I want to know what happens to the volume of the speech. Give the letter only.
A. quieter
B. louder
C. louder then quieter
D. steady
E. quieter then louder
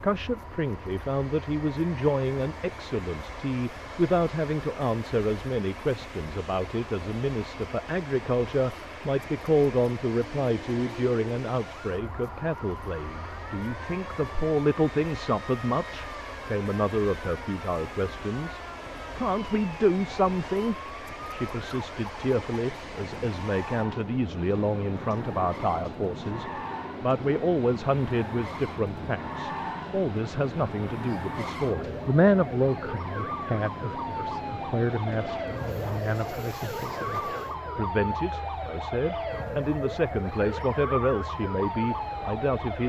D.